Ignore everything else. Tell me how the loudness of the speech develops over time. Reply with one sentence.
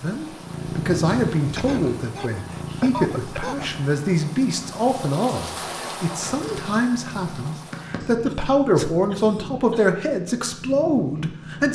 The loudness of the speech stays about the same.